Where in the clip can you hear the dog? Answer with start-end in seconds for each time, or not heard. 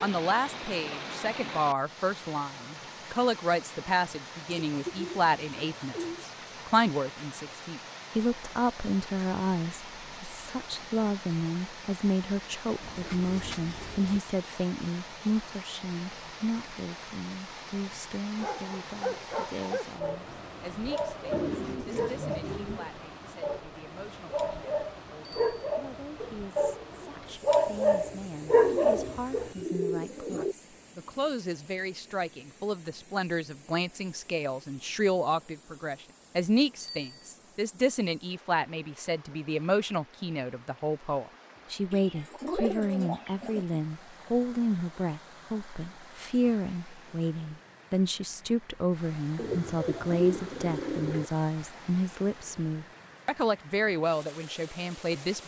18.4-29.5.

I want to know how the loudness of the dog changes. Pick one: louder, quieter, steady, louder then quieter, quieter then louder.
louder.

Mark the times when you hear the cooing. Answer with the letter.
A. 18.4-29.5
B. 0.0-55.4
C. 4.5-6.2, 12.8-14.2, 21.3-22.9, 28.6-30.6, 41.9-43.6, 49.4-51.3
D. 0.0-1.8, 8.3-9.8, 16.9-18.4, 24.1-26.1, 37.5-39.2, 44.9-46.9
C.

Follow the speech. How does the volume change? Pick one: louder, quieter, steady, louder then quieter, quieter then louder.
quieter then louder.